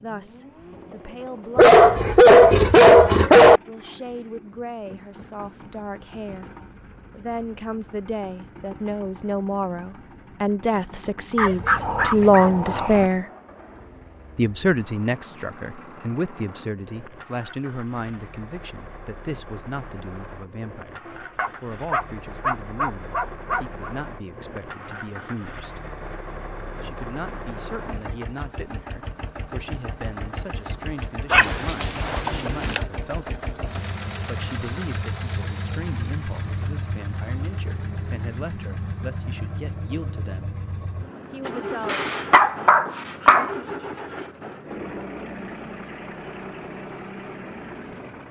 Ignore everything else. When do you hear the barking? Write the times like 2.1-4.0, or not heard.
1.6-3.6, 11.3-13.1, 21.1-23.9, 31.3-32.8, 41.9-43.5.